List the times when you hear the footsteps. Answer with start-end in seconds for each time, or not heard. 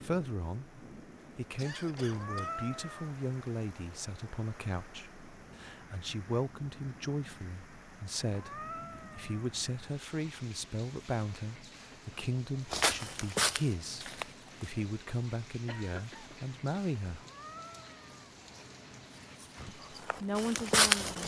12.7-14.4, 19.4-21.2.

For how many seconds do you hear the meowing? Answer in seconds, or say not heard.
4 s.